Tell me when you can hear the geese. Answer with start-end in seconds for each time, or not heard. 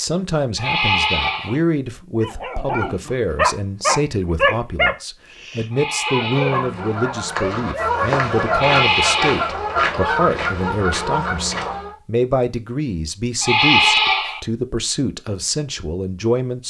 6.4-11.9.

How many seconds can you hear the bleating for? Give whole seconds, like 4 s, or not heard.
4 s.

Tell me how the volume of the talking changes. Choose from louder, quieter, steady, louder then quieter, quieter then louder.
steady.